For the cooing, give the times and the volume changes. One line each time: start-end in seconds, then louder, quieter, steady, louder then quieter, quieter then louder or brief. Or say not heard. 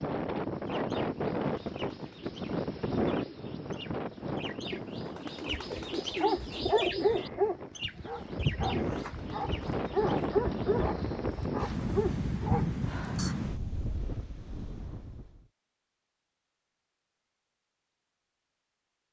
0.6-10.8 louder then quieter.